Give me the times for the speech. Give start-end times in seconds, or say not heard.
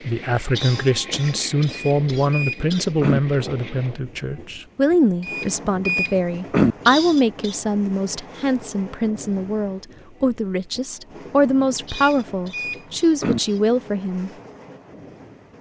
0.1-14.3.